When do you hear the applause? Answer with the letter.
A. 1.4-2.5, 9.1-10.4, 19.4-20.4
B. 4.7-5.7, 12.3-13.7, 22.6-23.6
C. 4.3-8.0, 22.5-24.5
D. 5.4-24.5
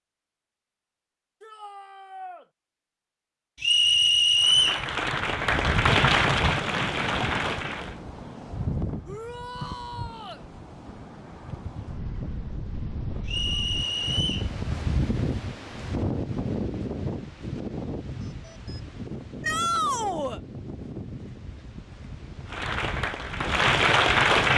C.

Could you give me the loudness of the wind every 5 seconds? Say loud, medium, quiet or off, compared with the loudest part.
off, loud, loud, loud, medium.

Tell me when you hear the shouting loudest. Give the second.
20 s.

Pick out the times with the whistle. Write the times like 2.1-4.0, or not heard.
3.6-4.8, 13.2-14.5.